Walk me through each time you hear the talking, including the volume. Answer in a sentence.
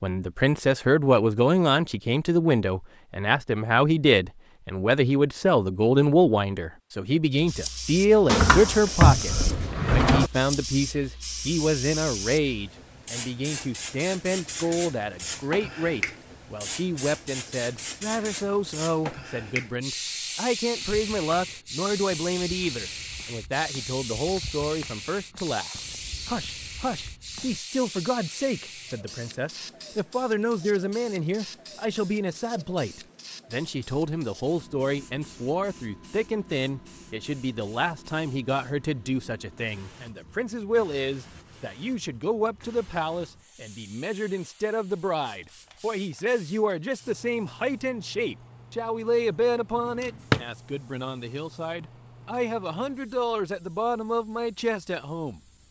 The talking can be heard from 0.0 to 55.4 s, getting quieter.